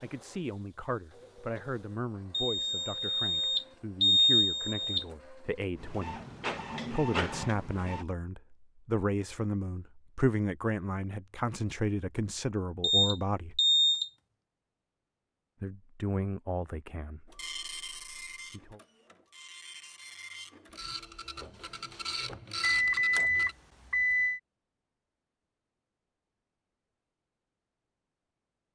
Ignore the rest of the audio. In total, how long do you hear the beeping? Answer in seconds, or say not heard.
6 s.